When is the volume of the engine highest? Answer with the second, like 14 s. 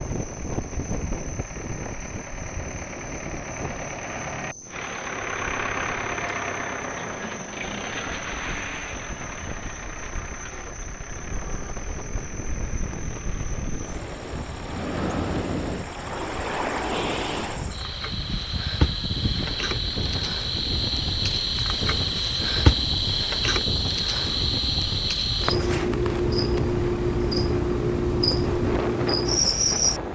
6 s.